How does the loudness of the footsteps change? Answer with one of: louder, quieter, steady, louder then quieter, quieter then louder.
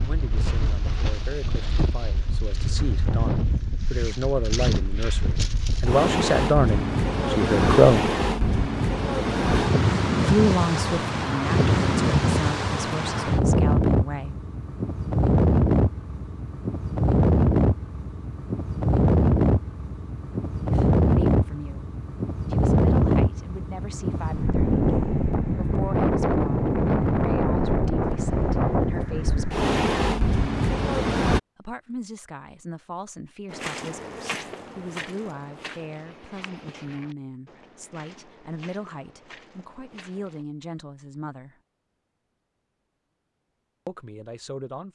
quieter.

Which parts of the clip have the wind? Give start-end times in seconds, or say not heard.
0.0-31.4.